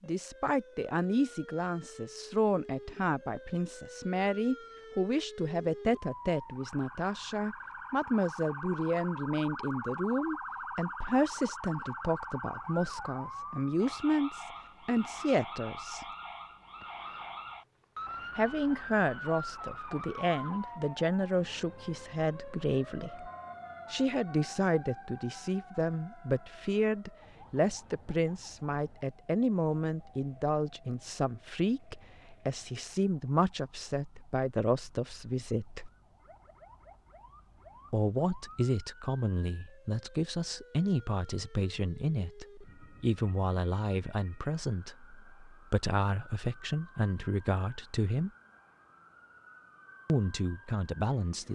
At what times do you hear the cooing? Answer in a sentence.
The cooing can't be heard in this clip.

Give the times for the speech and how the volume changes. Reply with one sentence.
You can hear the speech from 0.0 to 16.1 s, at a steady volume; from 18.4 to 23.3 s, at a steady volume; from 23.9 to 35.9 s, at a steady volume; from 37.9 to 48.3 s, at a steady volume; and briefly from 50.0 to 51.5 s.